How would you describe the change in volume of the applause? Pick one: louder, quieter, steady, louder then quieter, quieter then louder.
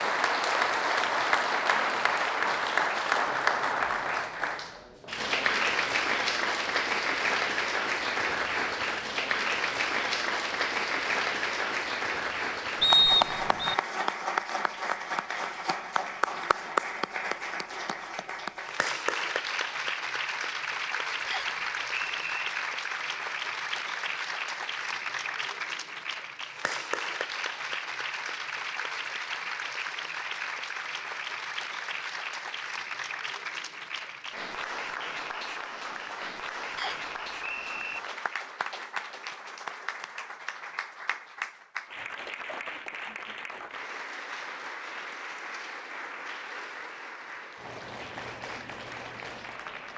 quieter.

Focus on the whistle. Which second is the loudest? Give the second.
13 s.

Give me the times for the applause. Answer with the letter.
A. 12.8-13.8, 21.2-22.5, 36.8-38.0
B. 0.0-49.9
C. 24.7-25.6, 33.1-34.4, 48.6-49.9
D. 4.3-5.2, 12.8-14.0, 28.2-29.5
B.